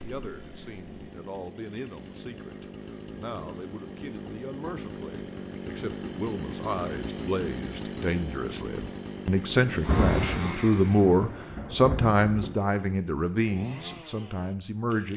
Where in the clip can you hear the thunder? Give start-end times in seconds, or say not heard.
9.8-12.6.